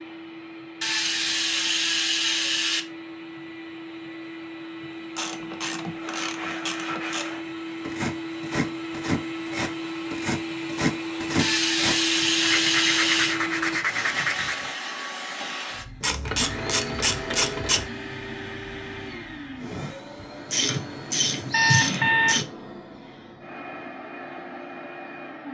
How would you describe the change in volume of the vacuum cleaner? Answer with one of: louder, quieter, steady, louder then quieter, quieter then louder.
louder then quieter.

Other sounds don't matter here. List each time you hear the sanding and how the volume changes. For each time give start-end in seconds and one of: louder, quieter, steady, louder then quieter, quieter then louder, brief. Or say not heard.
5.8-14.8 louder.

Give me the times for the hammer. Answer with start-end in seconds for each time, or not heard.
not heard.